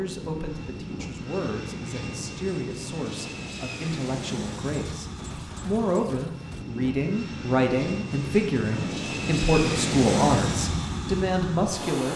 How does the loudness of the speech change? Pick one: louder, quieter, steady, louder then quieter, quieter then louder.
louder.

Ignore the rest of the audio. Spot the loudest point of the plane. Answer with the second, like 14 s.
10 s.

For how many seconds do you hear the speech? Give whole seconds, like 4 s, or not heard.
12 s.